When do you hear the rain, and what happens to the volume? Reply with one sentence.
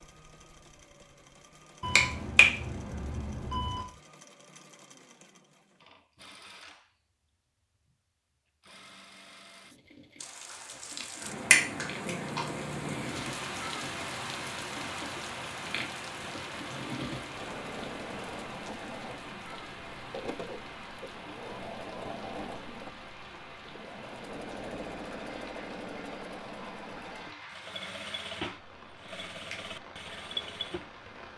The rain can be heard from 10.2 to 31.3 s, getting quieter.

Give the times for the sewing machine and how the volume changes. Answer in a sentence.
You can hear the sewing machine from 0.0 to 31.1 s, getting louder.